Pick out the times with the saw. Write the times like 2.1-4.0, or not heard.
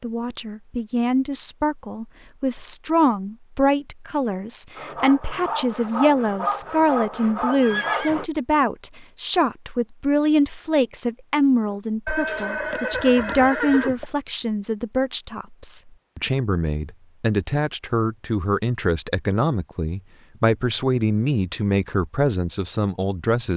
4.8-8.3.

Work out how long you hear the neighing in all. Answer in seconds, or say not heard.
3 s.